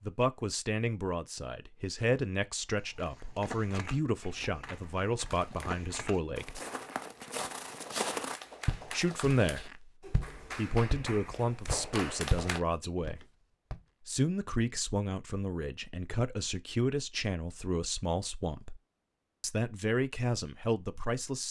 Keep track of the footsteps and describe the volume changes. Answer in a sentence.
The volume of the footsteps goes up.